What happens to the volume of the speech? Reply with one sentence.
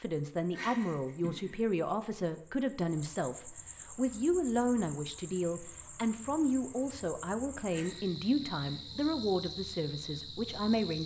The volume of the speech stays about the same.